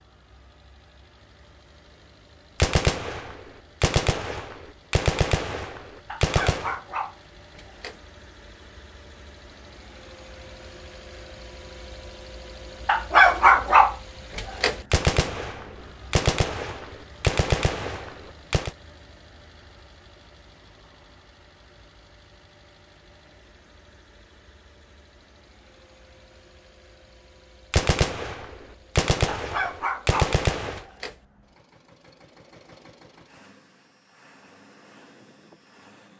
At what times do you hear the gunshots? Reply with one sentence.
You can hear the gunshots from 2.6 to 6.8 s, from 14.9 to 18.7 s and from 27.7 to 30.9 s.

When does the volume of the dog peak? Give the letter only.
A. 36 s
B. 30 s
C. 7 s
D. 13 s
D.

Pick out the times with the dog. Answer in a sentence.
You can hear the dog from 6.0 to 8.0 s, from 12.8 to 14.8 s and from 29.4 to 31.1 s.